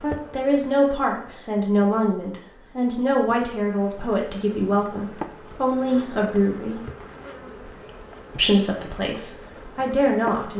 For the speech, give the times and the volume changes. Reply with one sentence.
You can hear the speech from 0.0 to 6.9 s, at a steady volume; and briefly from 8.3 to 10.5 s.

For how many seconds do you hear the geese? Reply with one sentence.
The geese can't be heard in this clip.